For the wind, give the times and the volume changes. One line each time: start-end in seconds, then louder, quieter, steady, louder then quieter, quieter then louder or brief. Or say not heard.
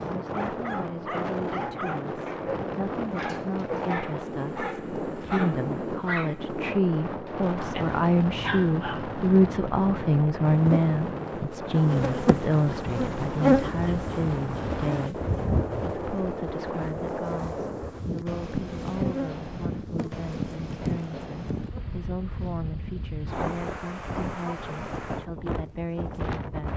0.0-26.7 steady.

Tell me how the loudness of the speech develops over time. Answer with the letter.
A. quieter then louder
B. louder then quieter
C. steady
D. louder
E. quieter
B.